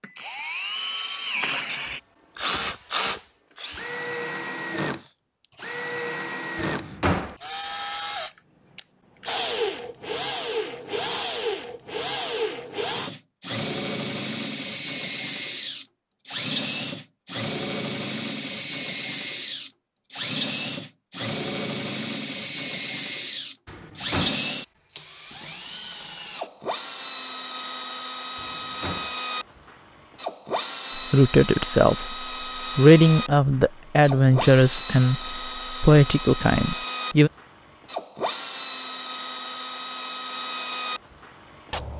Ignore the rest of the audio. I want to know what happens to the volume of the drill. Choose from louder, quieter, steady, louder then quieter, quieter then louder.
steady.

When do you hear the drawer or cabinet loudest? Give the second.
7 s.